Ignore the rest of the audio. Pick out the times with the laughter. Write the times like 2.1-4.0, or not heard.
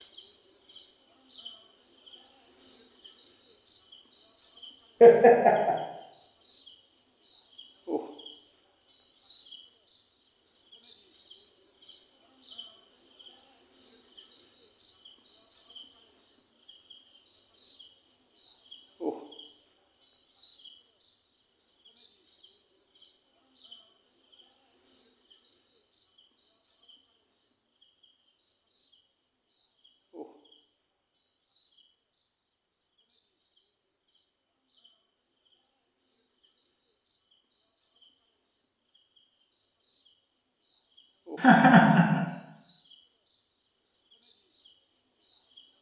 5.0-5.8, 41.4-42.2.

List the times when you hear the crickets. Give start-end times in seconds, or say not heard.
0.0-45.7.